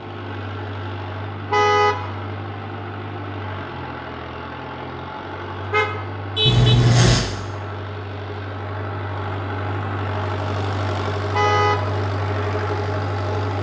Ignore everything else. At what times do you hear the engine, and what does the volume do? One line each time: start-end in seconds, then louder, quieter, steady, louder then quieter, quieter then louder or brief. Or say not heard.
0.0-13.5 louder.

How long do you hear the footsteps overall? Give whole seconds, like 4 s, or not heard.
not heard.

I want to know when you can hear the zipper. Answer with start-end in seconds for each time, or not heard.
6.5-7.2.